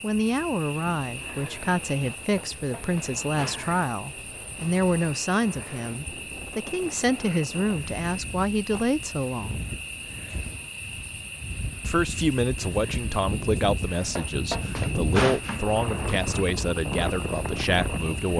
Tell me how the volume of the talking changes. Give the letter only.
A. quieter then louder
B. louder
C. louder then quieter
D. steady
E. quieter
D.